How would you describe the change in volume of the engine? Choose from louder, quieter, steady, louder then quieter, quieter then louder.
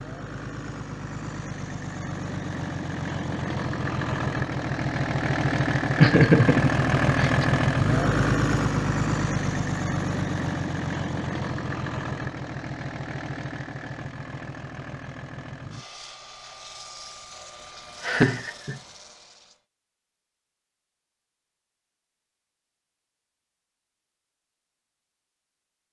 louder then quieter.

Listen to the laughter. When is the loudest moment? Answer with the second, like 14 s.
6 s.